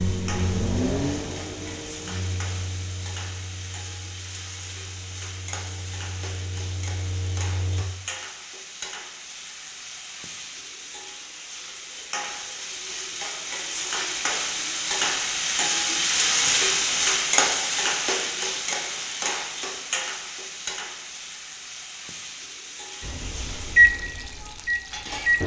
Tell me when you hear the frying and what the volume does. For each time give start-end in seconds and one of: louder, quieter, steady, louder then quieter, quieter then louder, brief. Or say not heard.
0.0-25.4 louder then quieter.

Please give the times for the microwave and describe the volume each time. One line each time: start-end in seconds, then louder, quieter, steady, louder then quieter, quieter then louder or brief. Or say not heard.
0.0-7.8 quieter then louder
23.0-25.4 brief.